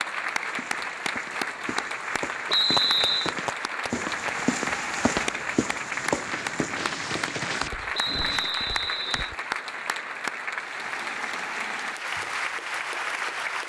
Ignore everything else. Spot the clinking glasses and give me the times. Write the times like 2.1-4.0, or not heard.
not heard.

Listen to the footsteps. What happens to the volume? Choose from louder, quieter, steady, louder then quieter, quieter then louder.
louder then quieter.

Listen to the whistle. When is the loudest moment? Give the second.
3 s.